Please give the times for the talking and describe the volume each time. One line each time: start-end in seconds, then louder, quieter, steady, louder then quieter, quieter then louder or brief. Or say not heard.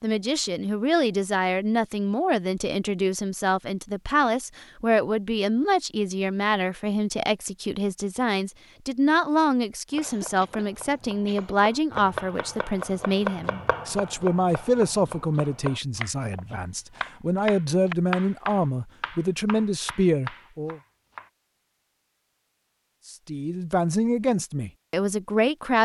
0.0-20.8 steady
23.1-25.7 brief.